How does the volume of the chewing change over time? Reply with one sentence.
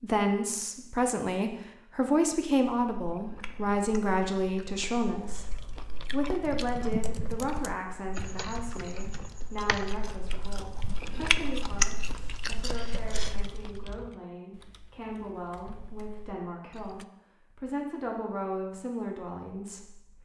The volume of the chewing goes up.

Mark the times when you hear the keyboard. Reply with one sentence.
The keyboard can be heard from 6.4 to 17.1 s.